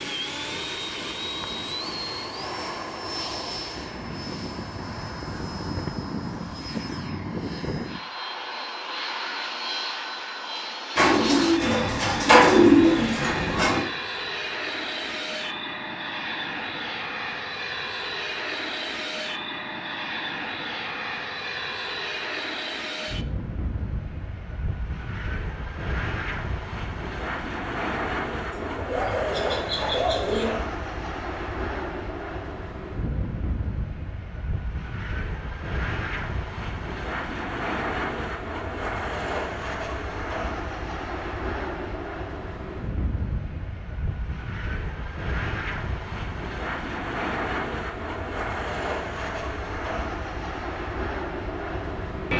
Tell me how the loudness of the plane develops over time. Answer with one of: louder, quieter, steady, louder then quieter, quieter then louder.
steady.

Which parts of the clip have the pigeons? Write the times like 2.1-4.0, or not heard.
10.9-13.8, 28.5-30.6.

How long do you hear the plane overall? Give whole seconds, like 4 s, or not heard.
52 s.